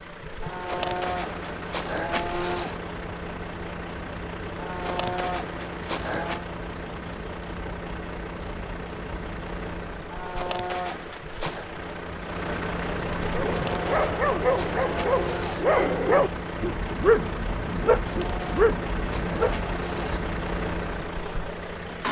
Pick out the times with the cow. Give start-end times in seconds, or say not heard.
0.4-2.8, 4.5-6.5, 10.1-11.7, 13.4-15.7, 18.0-20.2.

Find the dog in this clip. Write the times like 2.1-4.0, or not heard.
13.3-19.6.